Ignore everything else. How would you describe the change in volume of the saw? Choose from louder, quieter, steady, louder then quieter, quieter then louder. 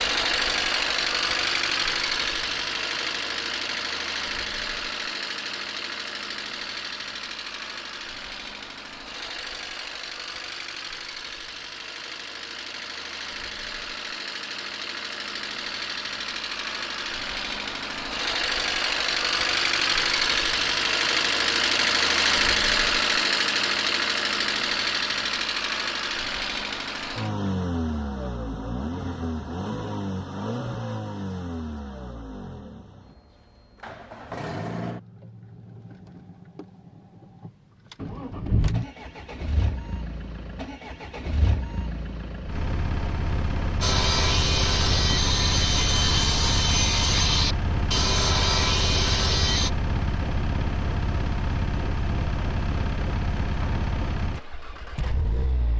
steady.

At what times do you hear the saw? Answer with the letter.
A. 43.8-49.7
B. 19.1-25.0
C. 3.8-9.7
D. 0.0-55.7
A.